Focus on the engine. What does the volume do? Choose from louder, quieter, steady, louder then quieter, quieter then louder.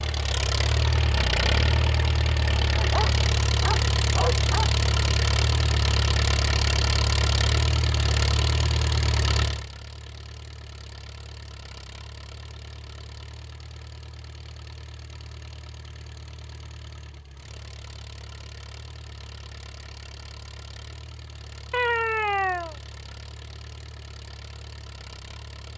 quieter.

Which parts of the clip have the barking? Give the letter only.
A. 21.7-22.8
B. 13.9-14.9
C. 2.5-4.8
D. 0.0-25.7
C.